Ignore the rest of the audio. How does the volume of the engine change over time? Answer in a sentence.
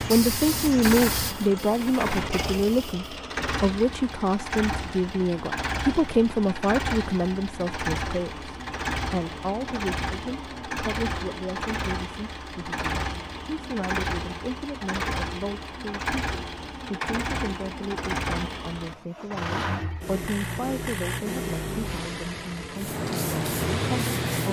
The loudness of the engine stays about the same.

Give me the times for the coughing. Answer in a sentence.
The coughing can't be heard in this clip.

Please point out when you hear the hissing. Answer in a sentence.
You can hear the hissing from 0.0 to 3.1 s and from 22.8 to 24.4 s.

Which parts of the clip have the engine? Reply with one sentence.
You can hear the engine from 0.0 to 24.4 s.